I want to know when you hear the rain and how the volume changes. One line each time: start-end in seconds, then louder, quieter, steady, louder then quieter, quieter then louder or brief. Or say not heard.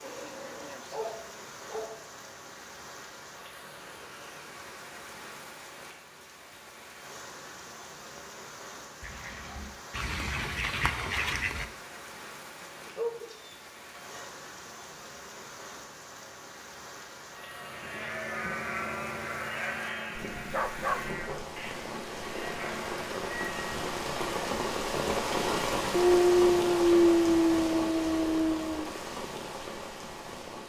0.0-30.6 louder.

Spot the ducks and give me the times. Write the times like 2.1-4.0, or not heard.
9.0-11.7.